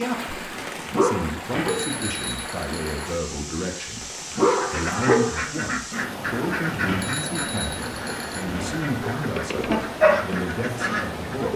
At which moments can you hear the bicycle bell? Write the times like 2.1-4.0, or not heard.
1.5-3.1, 6.8-8.8.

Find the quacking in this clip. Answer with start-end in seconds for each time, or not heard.
4.3-11.3.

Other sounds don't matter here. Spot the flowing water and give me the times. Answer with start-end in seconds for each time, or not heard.
0.0-11.5.